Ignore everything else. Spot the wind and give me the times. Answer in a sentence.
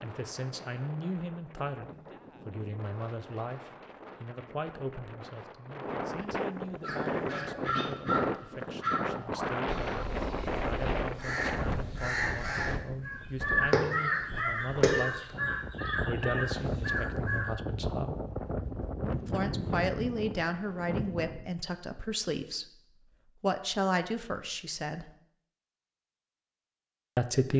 The wind can be heard from 0.0 to 21.5 s.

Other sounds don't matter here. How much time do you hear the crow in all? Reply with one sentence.
You can hear the crow for 11 seconds altogether.